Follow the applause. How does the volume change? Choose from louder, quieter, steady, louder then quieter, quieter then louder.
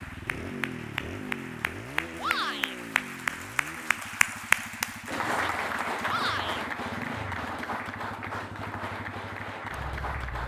louder then quieter.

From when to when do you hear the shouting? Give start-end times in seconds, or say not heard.
2.1-2.8, 6.0-6.7.